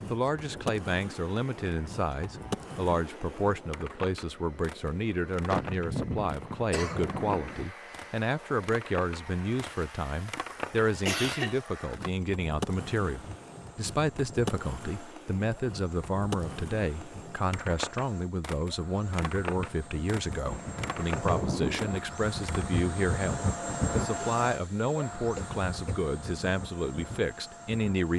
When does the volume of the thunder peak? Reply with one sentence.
The volume of the thunder peaks at 22 seconds.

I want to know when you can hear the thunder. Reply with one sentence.
The thunder can be heard from 6.3 to 7.7 s and from 20.4 to 22.0 s.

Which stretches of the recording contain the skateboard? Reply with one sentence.
You can hear the skateboard from 0.0 to 22.9 s.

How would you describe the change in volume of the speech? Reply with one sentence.
The volume of the speech stays about the same.